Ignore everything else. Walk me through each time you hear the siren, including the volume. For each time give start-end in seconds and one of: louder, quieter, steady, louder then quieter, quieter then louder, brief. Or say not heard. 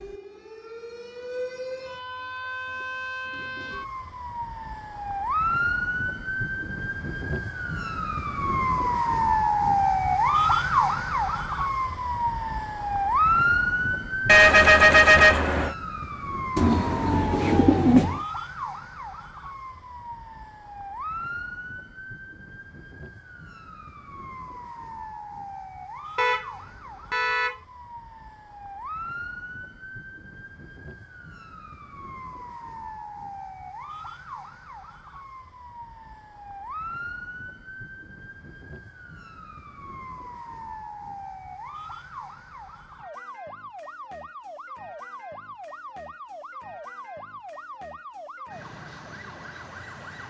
0.0-50.2 quieter.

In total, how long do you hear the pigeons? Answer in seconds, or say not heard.
2 s.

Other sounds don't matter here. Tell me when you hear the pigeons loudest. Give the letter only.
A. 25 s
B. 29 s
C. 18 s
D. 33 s
C.